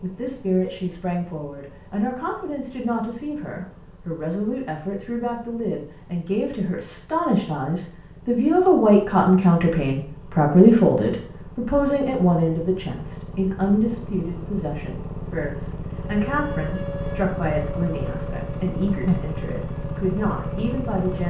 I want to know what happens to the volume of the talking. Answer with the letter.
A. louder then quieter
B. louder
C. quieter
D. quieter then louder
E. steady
A.